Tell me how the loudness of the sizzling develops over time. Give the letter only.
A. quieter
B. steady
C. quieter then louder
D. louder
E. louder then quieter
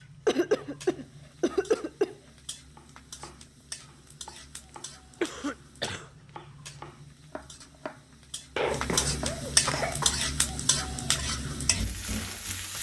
D.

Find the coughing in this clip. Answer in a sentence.
You can hear the coughing from 0.2 to 2.1 s, from 5.2 to 6.0 s and from 8.6 to 10.2 s.